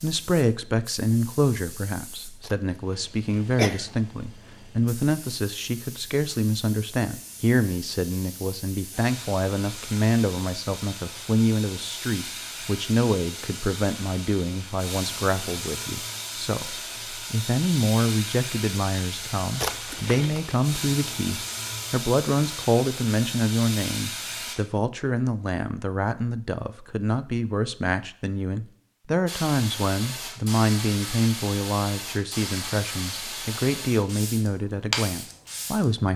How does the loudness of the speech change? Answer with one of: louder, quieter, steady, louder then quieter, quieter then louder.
steady.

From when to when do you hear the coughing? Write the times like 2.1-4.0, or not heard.
2.4-3.9, 19.6-20.6.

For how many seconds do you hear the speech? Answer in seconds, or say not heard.
36 s.